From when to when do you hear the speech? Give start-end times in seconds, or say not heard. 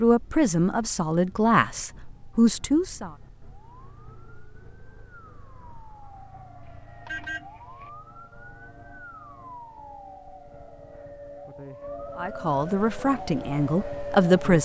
0.0-3.1, 12.2-14.6.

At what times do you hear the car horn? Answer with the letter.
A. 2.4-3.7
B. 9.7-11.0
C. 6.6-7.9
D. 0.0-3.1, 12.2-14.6
C.